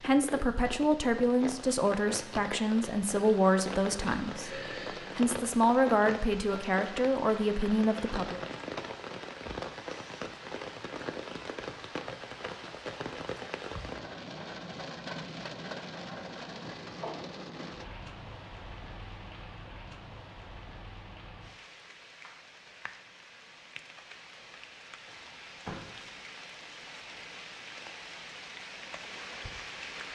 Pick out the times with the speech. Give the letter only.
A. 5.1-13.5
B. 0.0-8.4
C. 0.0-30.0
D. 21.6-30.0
B.